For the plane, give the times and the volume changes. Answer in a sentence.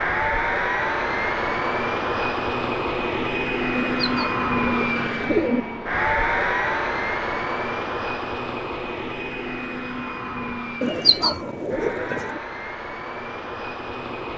The plane can be heard from 0.0 to 14.3 s, getting quieter.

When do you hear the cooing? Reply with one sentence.
You can hear the cooing from 3.8 to 5.6 s and from 10.8 to 12.3 s.